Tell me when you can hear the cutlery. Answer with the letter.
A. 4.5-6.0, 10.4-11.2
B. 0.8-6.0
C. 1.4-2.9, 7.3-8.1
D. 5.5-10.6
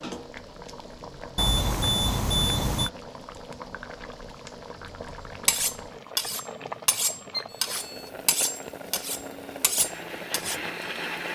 D.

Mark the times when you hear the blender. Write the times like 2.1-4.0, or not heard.
7.7-11.2.